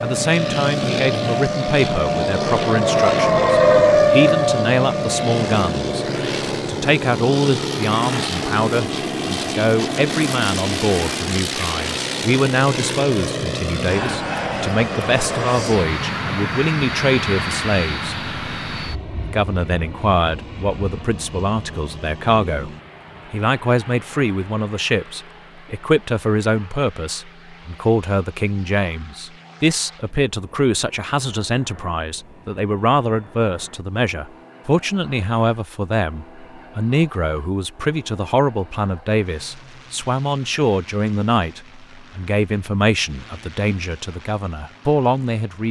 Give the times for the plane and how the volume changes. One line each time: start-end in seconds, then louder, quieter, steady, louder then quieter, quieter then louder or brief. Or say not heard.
0.0-45.6 quieter.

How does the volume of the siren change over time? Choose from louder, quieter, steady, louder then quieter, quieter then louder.
louder then quieter.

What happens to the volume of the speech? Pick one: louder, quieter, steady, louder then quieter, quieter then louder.
steady.